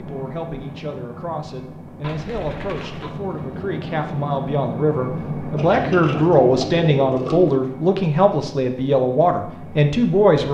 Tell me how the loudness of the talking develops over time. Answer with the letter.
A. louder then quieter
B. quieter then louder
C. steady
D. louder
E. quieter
D.